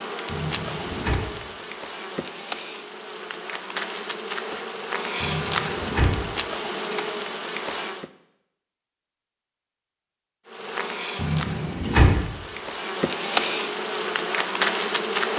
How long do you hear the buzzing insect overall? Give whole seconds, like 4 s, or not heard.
13 s.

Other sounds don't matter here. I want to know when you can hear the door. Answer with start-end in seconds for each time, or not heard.
0.2-1.2, 5.2-6.2, 11.2-12.2.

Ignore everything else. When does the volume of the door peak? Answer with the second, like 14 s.
12 s.